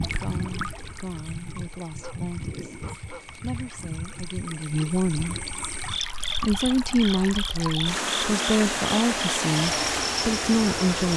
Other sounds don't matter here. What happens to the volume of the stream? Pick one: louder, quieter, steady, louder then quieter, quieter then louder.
quieter then louder.